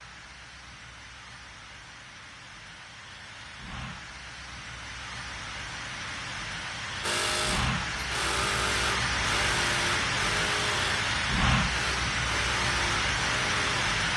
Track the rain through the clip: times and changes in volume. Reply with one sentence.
You can hear the rain from 0.0 to 14.1 s, getting louder.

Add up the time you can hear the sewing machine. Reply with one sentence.
The sewing machine can be heard for 7 seconds in total.